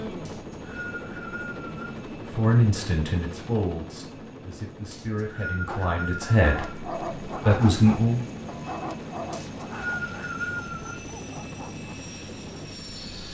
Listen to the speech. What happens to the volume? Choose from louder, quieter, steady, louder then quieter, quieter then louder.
quieter then louder.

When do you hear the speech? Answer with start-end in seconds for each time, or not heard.
2.3-8.2.